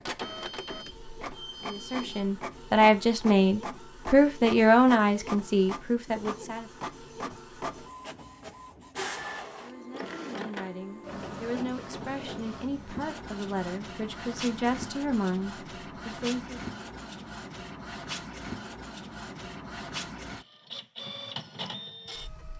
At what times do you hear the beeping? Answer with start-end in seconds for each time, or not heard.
0.2-2.2.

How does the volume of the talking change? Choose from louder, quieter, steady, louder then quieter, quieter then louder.
quieter then louder.